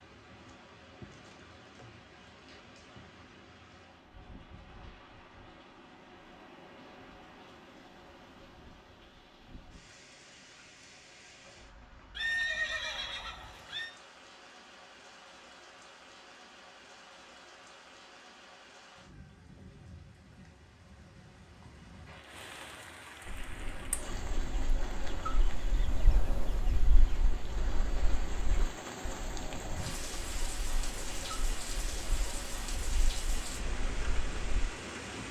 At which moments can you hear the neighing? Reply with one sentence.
The neighing can be heard from 12.2 to 13.9 s.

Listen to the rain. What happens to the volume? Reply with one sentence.
The volume of the rain goes up.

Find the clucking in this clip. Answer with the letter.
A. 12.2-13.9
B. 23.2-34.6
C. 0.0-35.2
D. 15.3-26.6
B.